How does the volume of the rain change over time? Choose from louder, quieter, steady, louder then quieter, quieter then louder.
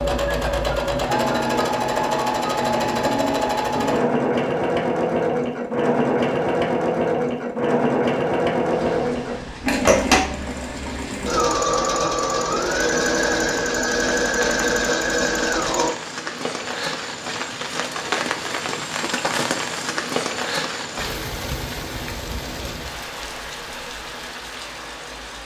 louder then quieter.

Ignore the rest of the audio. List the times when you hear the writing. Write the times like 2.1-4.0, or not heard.
not heard.